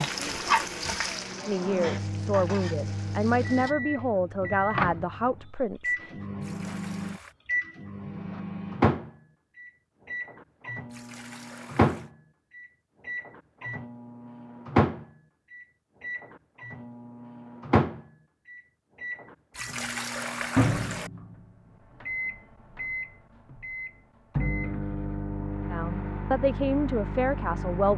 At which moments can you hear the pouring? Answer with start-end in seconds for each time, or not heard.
6.4-7.3, 10.9-12.1, 19.5-21.1.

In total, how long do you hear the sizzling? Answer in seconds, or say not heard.
4 s.